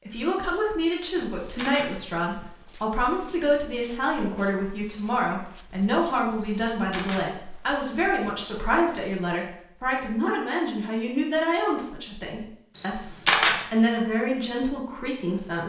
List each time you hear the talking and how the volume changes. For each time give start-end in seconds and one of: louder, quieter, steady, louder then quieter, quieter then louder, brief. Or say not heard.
0.1-15.6 steady.